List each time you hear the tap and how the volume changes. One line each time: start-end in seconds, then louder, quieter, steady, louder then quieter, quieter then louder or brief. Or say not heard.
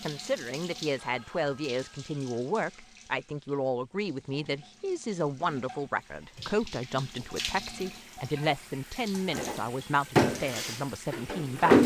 0.0-11.8 quieter then louder.